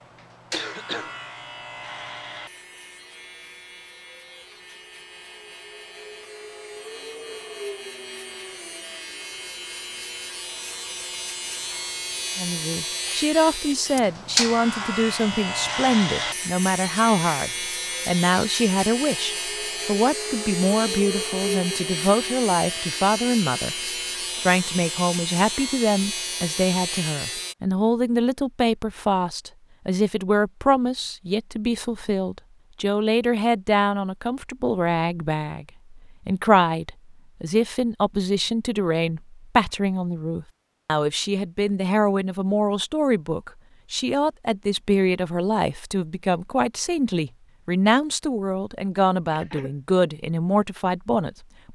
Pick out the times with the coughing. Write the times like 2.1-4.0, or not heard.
0.5-1.1, 49.3-49.8.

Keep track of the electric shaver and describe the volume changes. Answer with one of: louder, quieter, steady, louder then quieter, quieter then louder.
louder.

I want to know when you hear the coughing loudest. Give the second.
1 s.